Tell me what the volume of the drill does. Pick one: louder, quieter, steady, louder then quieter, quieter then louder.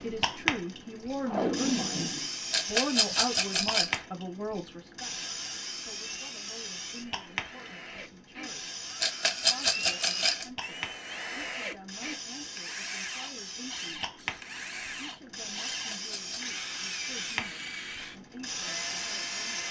louder.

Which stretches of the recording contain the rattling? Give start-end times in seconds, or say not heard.
2.5-4.0, 9.0-10.4, 15.7-16.5.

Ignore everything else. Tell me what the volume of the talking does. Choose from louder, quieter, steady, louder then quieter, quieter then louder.
quieter.